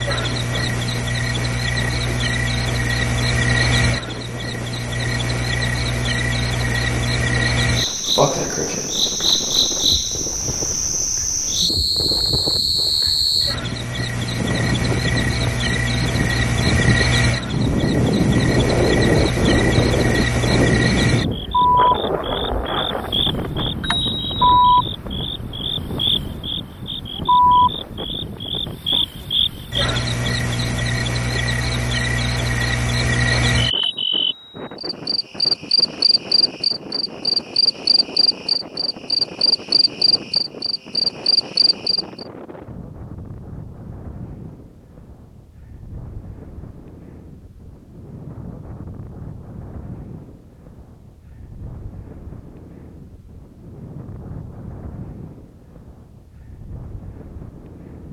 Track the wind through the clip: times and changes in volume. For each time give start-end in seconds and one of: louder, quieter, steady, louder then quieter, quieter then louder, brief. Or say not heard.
0.1-58.0 louder then quieter.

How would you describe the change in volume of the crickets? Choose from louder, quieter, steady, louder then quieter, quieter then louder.
steady.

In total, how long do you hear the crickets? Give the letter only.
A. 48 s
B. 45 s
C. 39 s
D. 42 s
D.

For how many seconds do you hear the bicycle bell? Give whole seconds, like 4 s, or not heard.
2 s.